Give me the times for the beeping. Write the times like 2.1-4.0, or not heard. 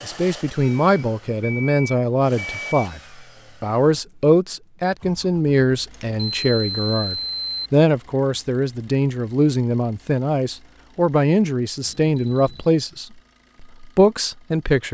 0.6-2.9, 5.9-7.7, 11.8-12.7.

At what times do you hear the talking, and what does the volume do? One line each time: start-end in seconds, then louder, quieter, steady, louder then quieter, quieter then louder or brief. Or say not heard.
0.1-3.0 brief
3.6-14.8 steady.